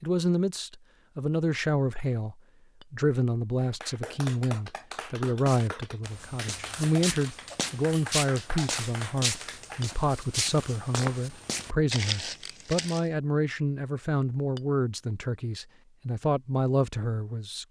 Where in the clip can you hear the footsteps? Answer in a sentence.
The footsteps can be heard from 5.5 to 13.1 s.